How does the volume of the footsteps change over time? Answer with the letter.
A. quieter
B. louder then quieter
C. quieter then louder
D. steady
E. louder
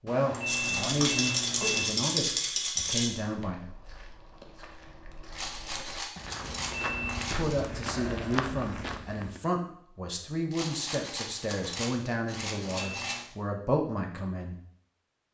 E.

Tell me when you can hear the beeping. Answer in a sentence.
The beeping can be heard from 0.1 to 1.9 s, from 6.3 to 7.3 s and from 12.4 to 13.2 s.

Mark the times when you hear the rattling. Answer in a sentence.
The rattling can be heard from 0.5 to 3.1 s, from 5.3 to 7.7 s and from 10.5 to 13.2 s.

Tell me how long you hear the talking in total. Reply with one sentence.
You can hear the talking for 11 seconds altogether.